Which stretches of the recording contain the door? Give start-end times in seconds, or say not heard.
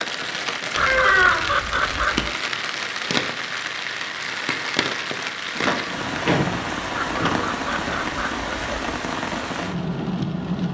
0.8-1.5, 5.5-7.3.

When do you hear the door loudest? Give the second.
1 s.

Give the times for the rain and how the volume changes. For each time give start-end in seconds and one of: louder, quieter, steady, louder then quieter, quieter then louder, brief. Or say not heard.
0.0-10.6 steady.